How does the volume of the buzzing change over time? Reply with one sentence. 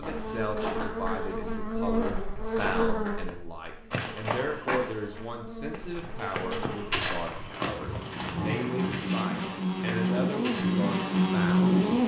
The loudness of the buzzing goes down, then up.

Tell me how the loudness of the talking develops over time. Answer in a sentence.
The loudness of the talking stays about the same.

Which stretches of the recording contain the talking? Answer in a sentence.
You can hear the talking from 0.0 to 11.8 s.